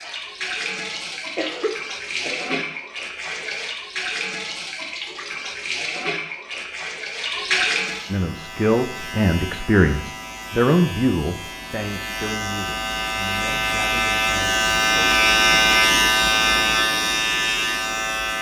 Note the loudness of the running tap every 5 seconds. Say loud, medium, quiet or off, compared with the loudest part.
loud, loud, off, off.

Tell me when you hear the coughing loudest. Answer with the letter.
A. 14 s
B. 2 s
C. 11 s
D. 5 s
B.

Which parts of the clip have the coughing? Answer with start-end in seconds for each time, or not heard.
1.1-2.8.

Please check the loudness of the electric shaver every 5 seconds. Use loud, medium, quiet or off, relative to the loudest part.
off, quiet, medium, loud.